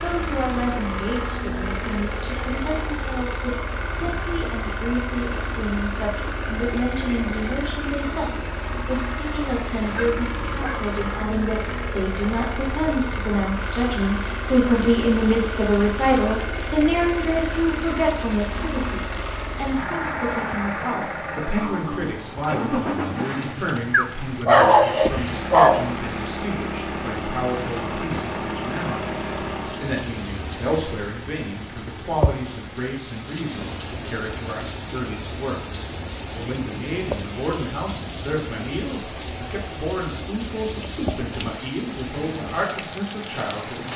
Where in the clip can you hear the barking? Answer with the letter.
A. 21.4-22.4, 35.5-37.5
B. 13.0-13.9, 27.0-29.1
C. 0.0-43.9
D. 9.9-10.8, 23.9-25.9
D.